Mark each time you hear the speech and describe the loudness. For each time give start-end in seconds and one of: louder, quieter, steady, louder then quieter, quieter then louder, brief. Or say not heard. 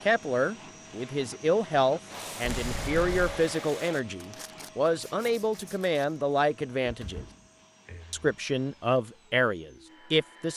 0.0-7.2 steady
8.1-10.5 brief.